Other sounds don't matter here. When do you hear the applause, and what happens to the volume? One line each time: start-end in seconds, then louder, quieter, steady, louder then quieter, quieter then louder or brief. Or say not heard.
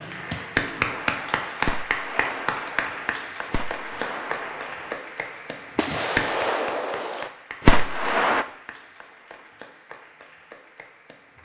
0.0-11.4 quieter.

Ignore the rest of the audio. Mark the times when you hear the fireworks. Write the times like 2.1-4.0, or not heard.
0.8-5.0, 5.8-8.4.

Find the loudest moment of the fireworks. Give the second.
8 s.